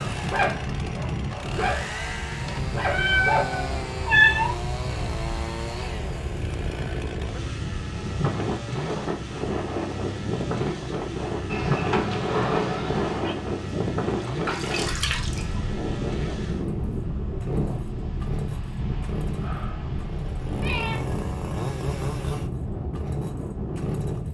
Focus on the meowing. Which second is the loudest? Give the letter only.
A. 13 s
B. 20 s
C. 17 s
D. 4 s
D.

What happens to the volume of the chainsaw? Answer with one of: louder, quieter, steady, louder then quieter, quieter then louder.
steady.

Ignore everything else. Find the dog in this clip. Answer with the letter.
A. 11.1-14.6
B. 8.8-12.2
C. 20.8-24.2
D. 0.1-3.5
D.